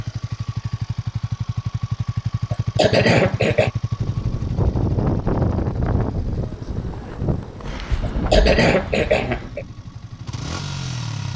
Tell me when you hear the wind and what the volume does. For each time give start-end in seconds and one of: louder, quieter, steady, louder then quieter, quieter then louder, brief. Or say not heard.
4.0-11.3 quieter.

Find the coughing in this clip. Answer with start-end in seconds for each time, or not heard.
2.5-3.7, 8.0-9.7.